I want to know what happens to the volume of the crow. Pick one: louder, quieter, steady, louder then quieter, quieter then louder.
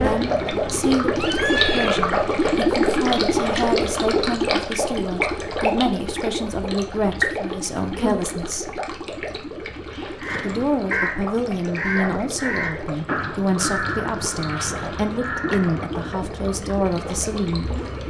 quieter.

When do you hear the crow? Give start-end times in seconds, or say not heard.
10.2-16.0.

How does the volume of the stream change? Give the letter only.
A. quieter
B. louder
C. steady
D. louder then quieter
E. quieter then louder
A.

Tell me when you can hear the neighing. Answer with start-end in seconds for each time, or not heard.
1.1-2.0, 10.2-10.8.